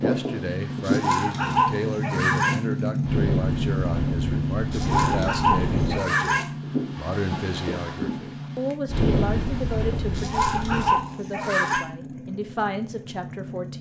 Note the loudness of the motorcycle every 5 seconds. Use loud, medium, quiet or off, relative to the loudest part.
loud, medium, medium.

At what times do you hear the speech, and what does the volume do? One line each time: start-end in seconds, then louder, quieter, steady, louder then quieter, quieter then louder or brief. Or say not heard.
0.0-13.7 steady.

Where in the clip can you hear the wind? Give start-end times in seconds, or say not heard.
0.0-11.1.